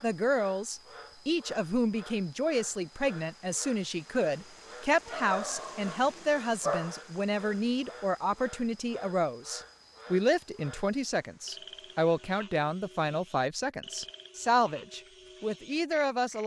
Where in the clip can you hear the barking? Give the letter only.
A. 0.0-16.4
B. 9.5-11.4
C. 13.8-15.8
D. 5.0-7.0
D.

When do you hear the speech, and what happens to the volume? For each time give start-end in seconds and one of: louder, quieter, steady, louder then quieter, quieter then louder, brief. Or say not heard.
0.0-16.4 steady.